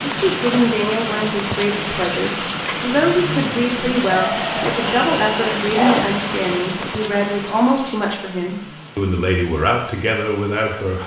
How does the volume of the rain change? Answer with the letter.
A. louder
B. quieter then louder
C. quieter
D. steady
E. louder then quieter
C.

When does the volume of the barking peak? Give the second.
6 s.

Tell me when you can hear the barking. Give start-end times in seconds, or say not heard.
4.1-6.0.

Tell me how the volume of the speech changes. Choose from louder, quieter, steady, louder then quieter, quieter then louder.
steady.